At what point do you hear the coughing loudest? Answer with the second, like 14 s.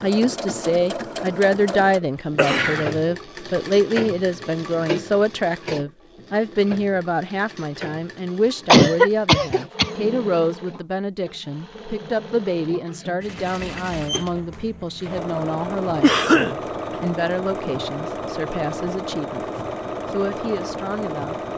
9 s.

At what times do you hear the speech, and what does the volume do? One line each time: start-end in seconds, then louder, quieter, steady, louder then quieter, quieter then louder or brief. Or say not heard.
0.0-21.4 quieter.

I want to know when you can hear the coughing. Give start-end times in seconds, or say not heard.
2.4-3.0, 8.7-9.9, 16.0-16.6.